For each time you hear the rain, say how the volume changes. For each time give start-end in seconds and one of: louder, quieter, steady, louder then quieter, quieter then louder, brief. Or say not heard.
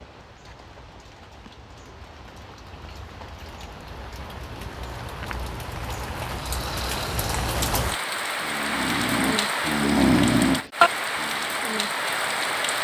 0.0-12.7 louder.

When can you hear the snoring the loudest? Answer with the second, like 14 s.
10 s.